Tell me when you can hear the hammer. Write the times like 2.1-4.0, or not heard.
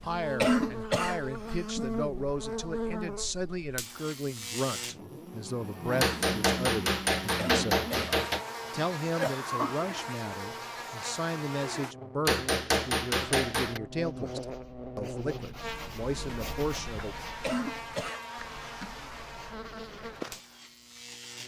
6.0-8.4, 12.2-13.8.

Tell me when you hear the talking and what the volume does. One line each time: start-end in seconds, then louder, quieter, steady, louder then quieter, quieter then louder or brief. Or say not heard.
0.0-17.1 steady.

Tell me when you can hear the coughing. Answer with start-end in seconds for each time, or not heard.
0.4-1.9, 7.3-8.2, 9.0-9.8, 17.4-19.1.